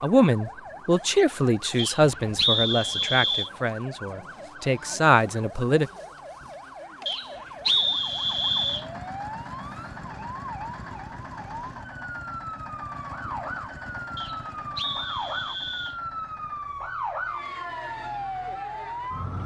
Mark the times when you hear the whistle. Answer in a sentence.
The whistle can be heard from 1.8 to 3.5 s, from 7.0 to 8.8 s and from 14.2 to 15.9 s.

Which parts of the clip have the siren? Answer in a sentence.
The siren can be heard from 0.0 to 19.4 s.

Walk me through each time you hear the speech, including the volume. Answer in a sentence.
The speech can be heard from 0.0 to 5.9 s, getting quieter then louder.